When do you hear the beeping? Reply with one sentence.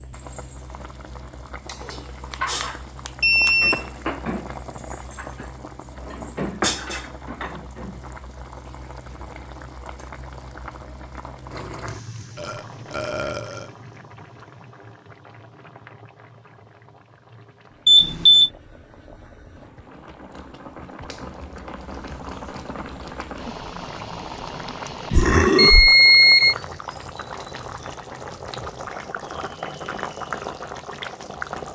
The beeping can be heard from 1.6 to 3.8 s, from 17.9 to 18.5 s and from 25.6 to 26.6 s.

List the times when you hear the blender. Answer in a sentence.
You can't hear the blender here.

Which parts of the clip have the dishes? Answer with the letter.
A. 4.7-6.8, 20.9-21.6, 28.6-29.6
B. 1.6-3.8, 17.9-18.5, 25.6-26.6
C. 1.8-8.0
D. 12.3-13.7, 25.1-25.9
C.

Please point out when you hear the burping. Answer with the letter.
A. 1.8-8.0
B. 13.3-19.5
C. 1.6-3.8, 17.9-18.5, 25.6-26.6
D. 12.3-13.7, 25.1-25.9
D.